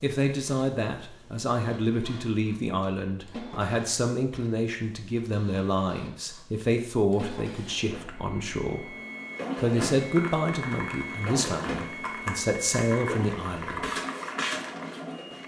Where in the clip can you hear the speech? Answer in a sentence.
The speech can be heard from 0.0 to 8.9 s and from 9.6 to 13.9 s.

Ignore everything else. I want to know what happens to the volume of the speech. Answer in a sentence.
The loudness of the speech stays about the same.